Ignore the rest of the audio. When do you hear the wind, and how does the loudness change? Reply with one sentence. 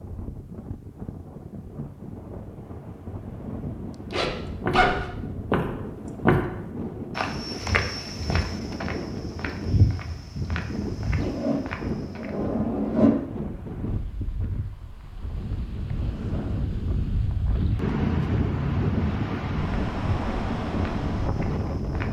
You can hear the wind from 0.0 to 22.0 s, getting louder.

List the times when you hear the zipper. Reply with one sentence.
The zipper can be heard from 4.1 to 5.1 s and from 11.2 to 13.2 s.